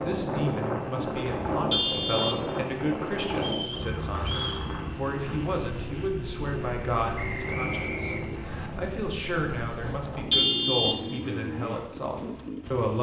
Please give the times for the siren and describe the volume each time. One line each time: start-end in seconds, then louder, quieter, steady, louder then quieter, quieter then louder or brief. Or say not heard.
not heard.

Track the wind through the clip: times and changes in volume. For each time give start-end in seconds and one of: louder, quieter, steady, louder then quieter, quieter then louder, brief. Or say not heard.
0.0-10.3 quieter.